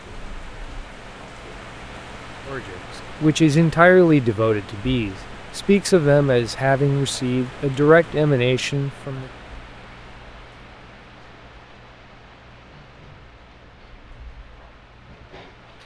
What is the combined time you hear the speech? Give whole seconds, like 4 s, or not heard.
7 s.